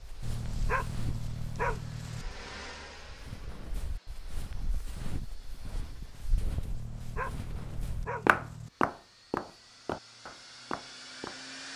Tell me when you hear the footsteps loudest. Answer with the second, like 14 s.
8 s.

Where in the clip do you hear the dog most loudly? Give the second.
2 s.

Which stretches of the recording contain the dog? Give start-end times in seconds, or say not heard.
0.2-2.2, 6.7-8.7.